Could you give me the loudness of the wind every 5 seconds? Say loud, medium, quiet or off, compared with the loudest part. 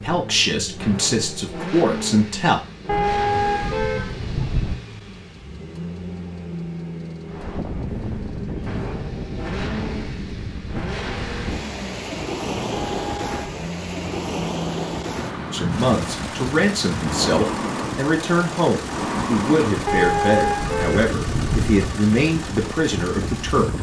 off, loud, loud, loud, loud.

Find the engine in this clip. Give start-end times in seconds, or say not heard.
0.0-23.7.